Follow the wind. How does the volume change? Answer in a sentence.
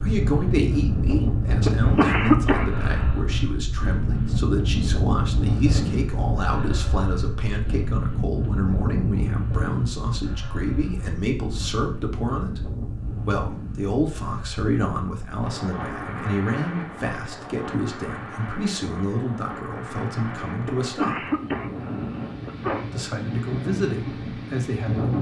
The volume of the wind goes down.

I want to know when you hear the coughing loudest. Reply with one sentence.
The volume of the coughing peaks at 2 seconds.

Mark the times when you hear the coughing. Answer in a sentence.
The coughing can be heard from 1.6 to 3.1 s and from 20.6 to 22.9 s.